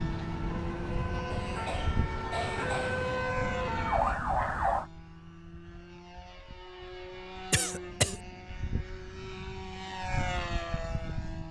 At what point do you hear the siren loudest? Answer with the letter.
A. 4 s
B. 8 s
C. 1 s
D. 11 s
A.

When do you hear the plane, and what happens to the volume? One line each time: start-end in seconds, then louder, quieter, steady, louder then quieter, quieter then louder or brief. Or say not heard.
0.0-11.4 quieter then louder.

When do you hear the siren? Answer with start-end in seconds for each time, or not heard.
0.0-4.8.